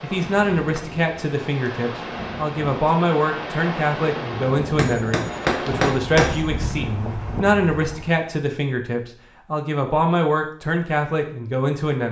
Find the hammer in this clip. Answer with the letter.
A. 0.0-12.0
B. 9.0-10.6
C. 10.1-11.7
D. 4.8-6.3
D.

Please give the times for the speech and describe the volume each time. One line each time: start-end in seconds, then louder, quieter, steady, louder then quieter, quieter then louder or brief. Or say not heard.
0.0-12.0 steady.